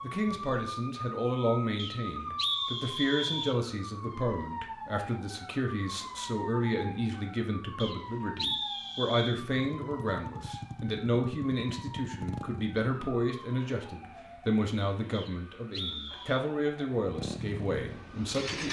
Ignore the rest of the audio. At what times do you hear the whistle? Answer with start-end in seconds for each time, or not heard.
1.8-3.6, 7.8-9.4, 15.1-16.4.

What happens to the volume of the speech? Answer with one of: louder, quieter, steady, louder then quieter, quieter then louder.
steady.